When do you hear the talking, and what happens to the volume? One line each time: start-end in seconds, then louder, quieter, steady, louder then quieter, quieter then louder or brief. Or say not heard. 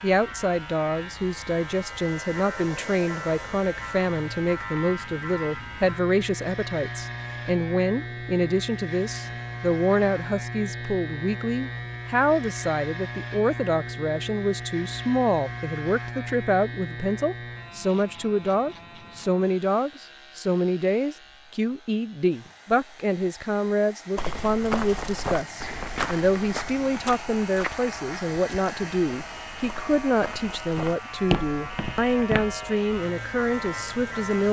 0.0-34.4 steady.